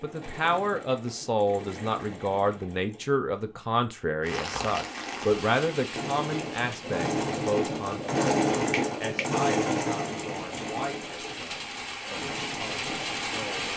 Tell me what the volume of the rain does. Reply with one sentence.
The loudness of the rain goes down, then up.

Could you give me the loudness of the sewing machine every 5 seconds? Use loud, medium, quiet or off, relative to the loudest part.
quiet, loud, medium.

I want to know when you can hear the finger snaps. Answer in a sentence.
The finger snaps can be heard from 8.7 to 9.3 s.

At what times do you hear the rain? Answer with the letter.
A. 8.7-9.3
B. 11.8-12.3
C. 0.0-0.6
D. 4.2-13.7
D.